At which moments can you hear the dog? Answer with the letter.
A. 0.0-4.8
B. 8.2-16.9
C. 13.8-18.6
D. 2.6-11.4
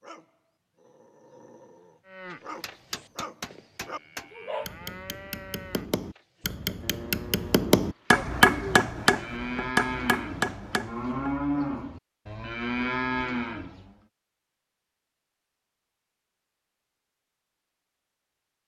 A.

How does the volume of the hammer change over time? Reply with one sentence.
The volume of the hammer goes up, then down.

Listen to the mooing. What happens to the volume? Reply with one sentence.
The loudness of the mooing goes up.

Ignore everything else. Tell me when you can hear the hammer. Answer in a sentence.
You can hear the hammer from 2.6 to 11.4 s.